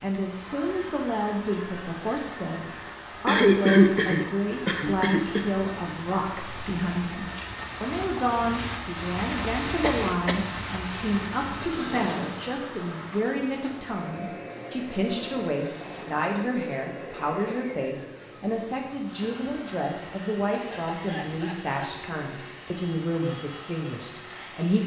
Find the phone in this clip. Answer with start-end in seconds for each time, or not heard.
not heard.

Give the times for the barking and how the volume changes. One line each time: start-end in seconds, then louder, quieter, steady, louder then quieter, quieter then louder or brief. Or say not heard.
not heard.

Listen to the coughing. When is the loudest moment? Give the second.
4 s.